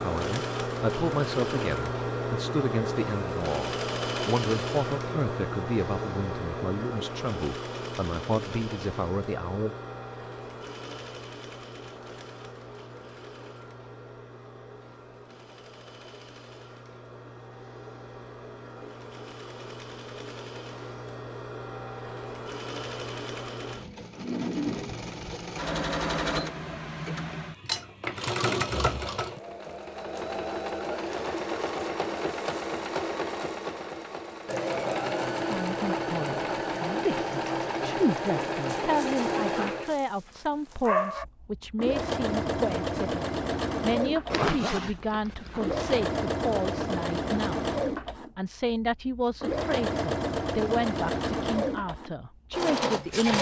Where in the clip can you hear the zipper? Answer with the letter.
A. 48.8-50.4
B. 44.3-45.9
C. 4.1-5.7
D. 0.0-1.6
B.